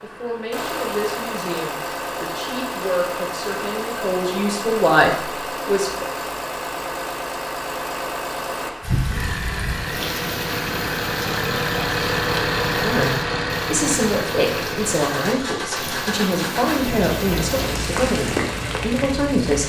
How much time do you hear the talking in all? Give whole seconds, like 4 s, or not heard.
13 s.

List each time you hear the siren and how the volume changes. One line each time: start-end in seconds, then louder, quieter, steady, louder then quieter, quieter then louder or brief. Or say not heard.
not heard.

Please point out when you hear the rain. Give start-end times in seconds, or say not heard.
8.8-19.6.